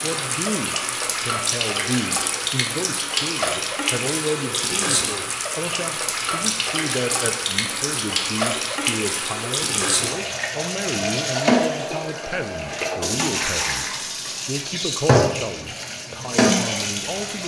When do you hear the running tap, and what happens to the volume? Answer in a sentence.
The running tap can be heard from 0.0 to 17.4 s, at a steady volume.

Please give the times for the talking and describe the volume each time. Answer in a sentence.
You can hear the talking from 0.0 to 17.4 s, at a steady volume.